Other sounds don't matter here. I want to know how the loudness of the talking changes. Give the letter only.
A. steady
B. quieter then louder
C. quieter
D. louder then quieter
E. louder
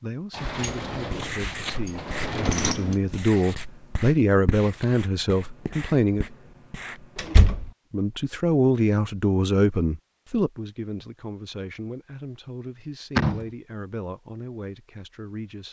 D.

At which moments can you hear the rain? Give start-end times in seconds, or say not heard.
not heard.